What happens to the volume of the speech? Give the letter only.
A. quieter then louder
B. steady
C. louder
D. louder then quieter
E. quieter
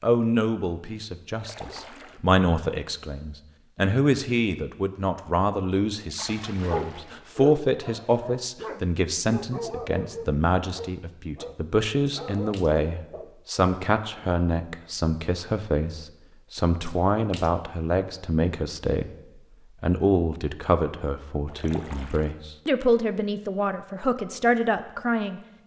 B.